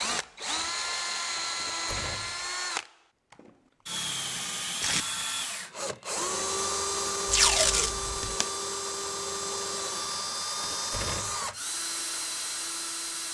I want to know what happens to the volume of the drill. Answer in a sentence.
The loudness of the drill stays about the same.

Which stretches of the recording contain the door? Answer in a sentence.
The door can be heard from 1.6 to 2.5 s and from 10.6 to 11.5 s.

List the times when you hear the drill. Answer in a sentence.
The drill can be heard from 0.0 to 13.2 s.